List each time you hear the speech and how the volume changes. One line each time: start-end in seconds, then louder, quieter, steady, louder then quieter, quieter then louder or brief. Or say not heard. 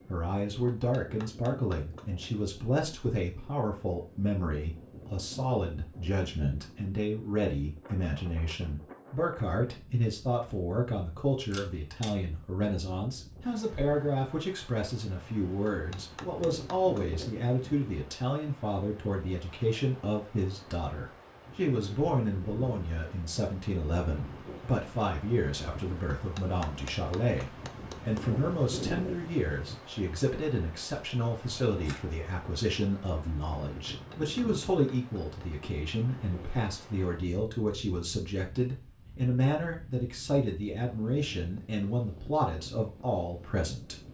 0.1-44.0 steady.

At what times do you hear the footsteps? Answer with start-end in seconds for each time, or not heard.
not heard.